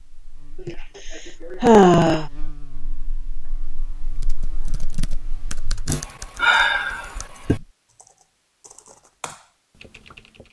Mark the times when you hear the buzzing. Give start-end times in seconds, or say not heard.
0.0-6.0.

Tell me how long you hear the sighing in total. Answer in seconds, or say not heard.
3 s.